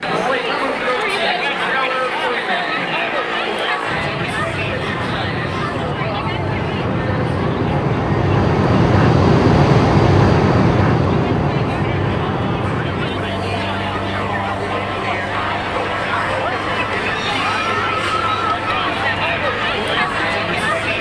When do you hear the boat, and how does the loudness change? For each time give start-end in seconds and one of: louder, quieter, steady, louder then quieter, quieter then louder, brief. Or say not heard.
0.0-20.9 louder then quieter.